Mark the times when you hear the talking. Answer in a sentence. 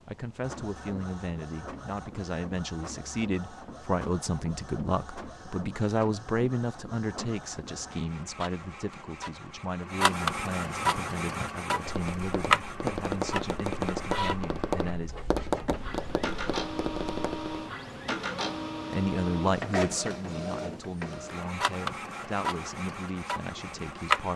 You can hear the talking from 0.1 to 15.2 s and from 18.9 to 24.3 s.